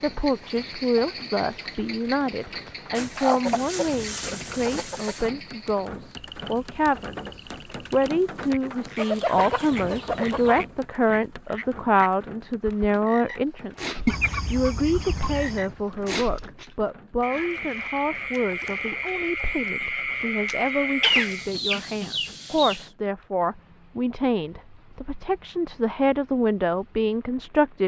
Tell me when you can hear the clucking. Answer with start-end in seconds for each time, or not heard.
3.0-5.3, 8.9-10.7, 14.1-15.7, 21.0-22.9.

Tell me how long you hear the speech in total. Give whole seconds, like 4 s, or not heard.
28 s.